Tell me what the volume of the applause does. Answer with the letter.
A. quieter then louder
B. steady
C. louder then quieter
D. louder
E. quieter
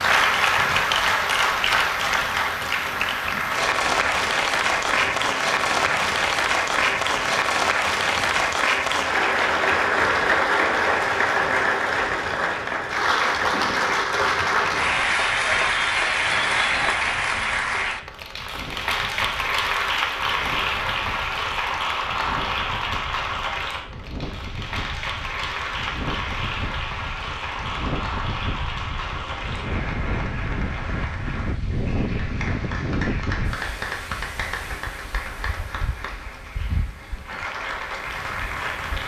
E.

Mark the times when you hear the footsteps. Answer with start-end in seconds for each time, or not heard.
not heard.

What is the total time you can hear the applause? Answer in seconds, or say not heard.
39 s.